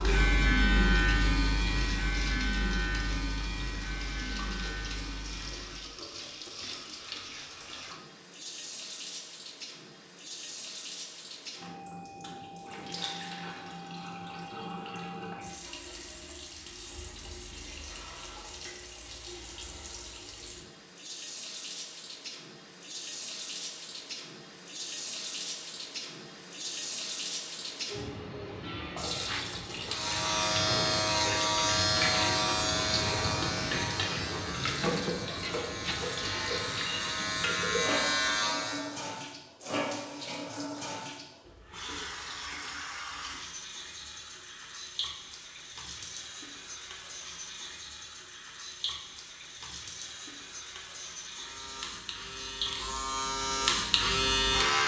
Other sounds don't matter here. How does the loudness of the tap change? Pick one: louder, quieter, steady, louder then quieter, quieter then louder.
louder then quieter.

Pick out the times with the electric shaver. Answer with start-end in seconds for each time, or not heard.
0.0-6.0, 29.9-38.9, 51.3-54.8.